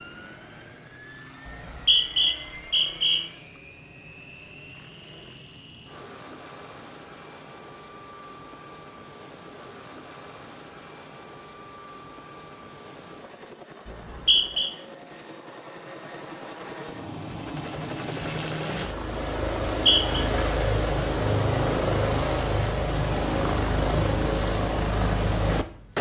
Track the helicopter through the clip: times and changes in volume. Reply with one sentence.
The helicopter can be heard from 0.0 to 25.9 s, getting louder.